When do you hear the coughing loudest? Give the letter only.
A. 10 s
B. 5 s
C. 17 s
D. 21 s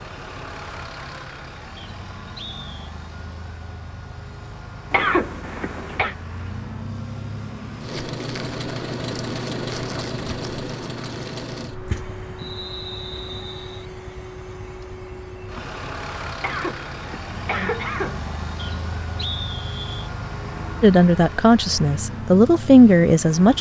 B.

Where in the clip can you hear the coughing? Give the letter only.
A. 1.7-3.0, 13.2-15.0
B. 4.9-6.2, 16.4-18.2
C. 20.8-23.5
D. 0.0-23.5
B.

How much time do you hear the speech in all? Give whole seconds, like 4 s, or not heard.
3 s.